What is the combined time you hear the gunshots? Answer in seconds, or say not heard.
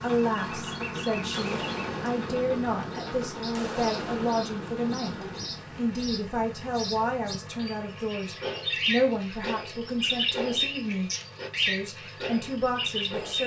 5 s.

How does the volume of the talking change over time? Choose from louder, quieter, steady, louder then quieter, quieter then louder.
steady.